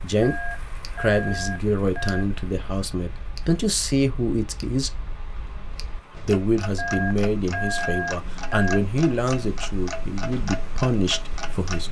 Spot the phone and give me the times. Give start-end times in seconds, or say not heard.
0.2-2.2, 6.8-8.8.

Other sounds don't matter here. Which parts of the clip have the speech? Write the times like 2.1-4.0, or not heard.
0.0-5.0, 6.1-11.8.